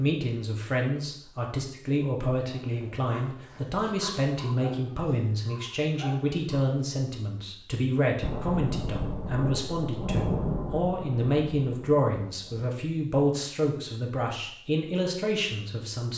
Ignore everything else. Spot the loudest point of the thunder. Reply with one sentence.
The loudest moment of the thunder is at 10 seconds.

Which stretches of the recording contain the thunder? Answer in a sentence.
You can hear the thunder from 8.2 to 12.7 s.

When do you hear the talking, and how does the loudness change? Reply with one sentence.
You can hear the talking from 0.0 to 16.1 s, at a steady volume.